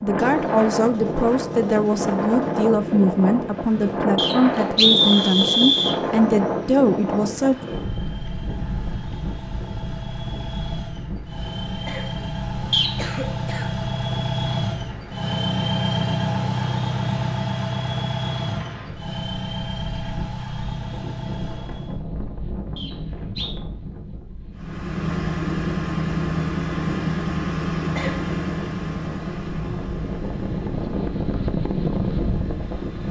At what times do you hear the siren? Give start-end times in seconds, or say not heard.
not heard.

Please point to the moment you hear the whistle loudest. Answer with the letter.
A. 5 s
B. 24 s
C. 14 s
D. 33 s
A.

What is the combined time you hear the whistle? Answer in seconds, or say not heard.
3 s.